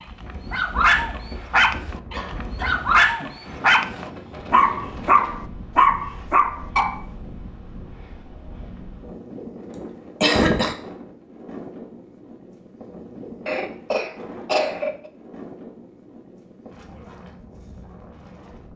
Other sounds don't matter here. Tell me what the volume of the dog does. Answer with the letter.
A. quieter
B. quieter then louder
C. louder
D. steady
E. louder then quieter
D.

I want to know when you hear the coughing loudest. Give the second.
10 s.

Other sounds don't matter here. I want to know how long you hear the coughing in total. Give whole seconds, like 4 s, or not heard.
4 s.